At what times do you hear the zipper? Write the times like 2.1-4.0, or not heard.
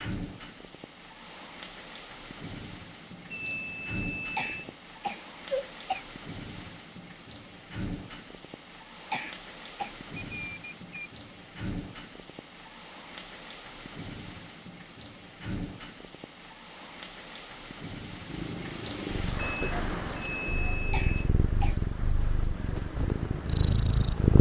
not heard.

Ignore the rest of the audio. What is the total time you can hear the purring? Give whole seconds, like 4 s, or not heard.
6 s.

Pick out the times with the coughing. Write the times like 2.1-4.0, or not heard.
4.3-6.0, 9.1-9.9, 20.9-21.8.